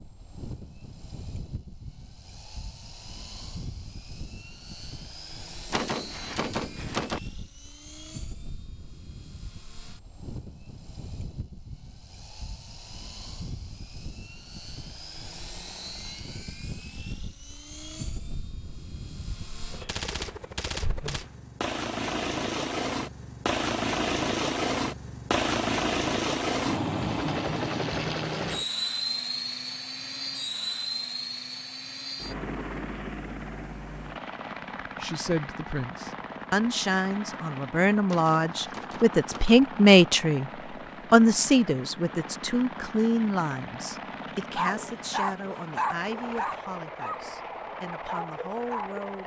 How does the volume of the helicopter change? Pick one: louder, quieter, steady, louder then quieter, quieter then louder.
louder then quieter.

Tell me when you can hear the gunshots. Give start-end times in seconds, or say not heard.
5.7-7.2, 19.9-21.3, 38.0-39.6.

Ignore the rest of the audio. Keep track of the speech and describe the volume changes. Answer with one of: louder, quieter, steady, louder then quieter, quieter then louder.
louder then quieter.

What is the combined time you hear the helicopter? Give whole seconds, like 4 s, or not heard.
49 s.